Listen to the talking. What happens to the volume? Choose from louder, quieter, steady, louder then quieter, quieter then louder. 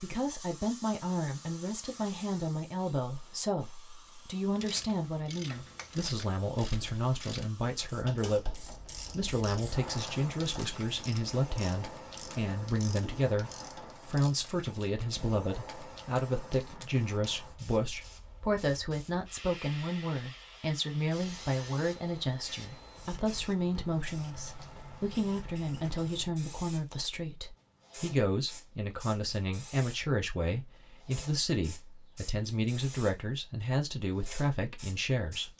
steady.